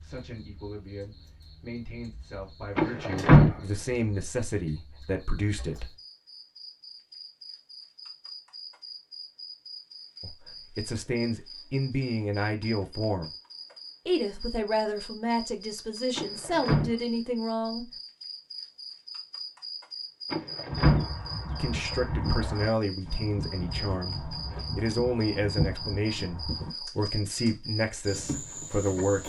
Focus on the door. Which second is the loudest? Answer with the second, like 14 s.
3 s.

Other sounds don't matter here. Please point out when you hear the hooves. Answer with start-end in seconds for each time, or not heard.
20.7-26.8.